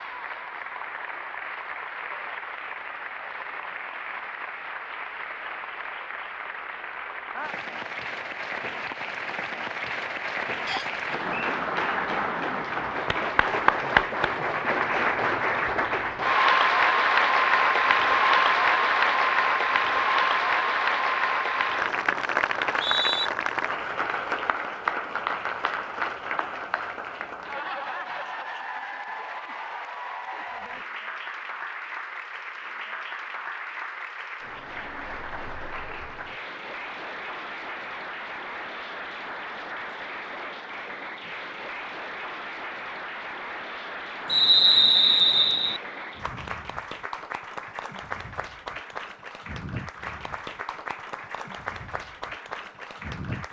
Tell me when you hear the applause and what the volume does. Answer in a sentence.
The applause can be heard from 0.0 to 53.4 s, getting louder then quieter.